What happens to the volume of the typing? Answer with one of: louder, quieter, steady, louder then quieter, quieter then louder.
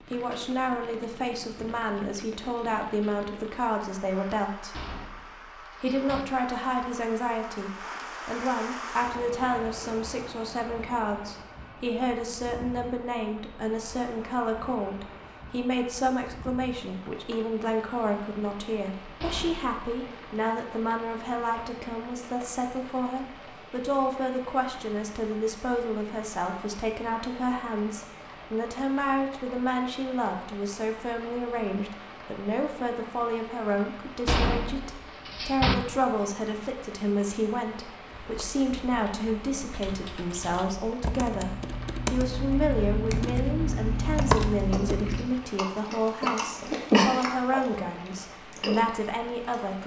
louder.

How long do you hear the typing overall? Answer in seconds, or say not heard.
7 s.